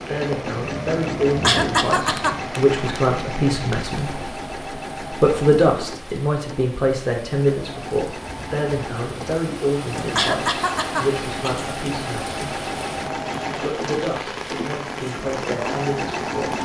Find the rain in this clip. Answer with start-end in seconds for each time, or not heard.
0.0-16.6.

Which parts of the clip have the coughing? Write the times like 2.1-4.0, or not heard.
1.4-2.4, 10.2-11.7.